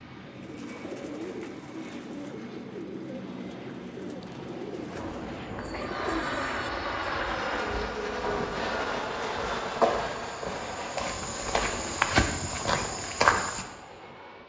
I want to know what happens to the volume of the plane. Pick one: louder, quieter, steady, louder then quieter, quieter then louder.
louder then quieter.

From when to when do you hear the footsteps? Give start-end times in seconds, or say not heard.
4.9-13.7.